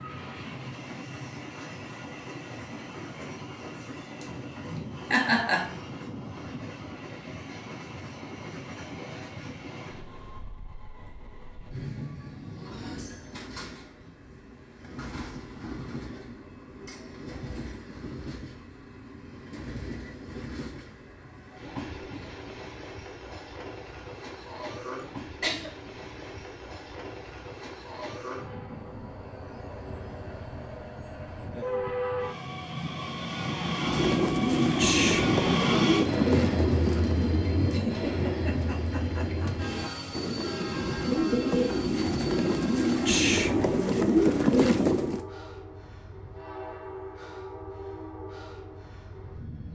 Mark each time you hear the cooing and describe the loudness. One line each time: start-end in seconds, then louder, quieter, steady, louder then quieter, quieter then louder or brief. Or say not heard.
33.8-45.2 quieter then louder.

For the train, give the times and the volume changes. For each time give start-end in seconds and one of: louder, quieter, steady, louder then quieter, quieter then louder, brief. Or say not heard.
0.0-49.7 louder then quieter.